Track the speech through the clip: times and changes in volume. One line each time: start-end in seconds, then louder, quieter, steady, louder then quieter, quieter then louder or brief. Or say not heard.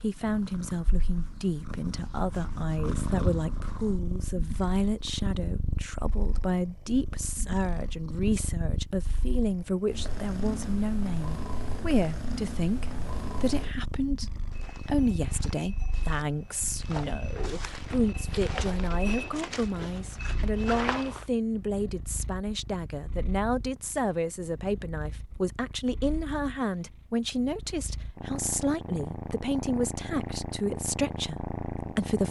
0.0-32.2 steady.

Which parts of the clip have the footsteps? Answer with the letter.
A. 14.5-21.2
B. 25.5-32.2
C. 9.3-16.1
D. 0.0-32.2
A.